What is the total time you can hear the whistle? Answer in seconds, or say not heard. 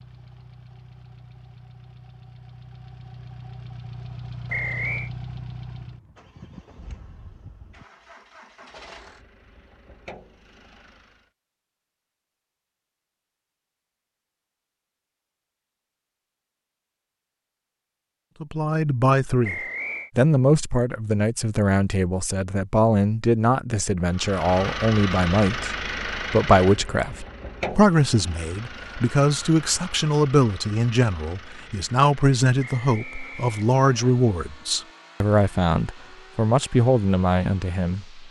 3 s.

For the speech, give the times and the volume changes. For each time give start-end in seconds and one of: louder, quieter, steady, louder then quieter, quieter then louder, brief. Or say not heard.
18.4-38.2 steady.